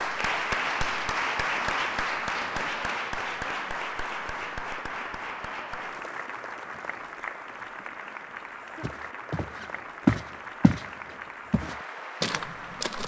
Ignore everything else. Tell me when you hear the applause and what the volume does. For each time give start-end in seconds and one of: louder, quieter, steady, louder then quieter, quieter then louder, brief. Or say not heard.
0.0-13.0 quieter.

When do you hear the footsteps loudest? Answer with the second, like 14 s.
10 s.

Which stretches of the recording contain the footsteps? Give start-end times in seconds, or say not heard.
8.8-13.0.